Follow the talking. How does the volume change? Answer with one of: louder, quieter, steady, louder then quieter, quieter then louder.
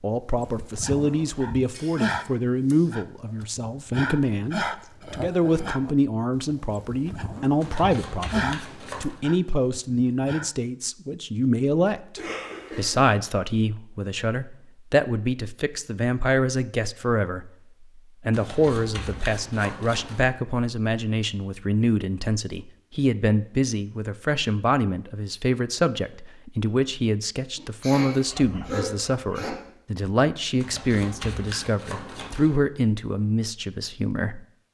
steady.